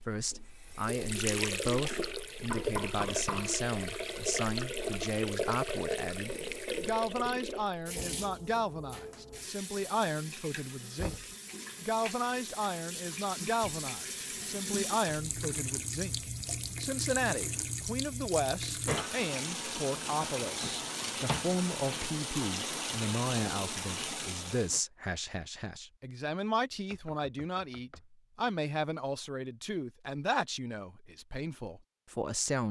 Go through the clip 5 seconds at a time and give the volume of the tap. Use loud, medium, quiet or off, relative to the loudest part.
loud, loud, medium, loud, loud, off, off.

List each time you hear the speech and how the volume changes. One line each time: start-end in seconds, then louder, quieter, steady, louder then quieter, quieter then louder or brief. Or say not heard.
0.0-32.6 steady.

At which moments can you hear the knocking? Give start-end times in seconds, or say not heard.
2.5-3.5, 10.9-11.3, 26.9-28.5.